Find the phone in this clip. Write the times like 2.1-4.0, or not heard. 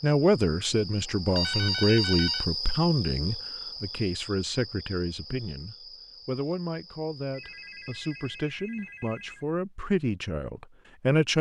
1.2-2.5, 7.2-9.5.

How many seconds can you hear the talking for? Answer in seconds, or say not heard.
11 s.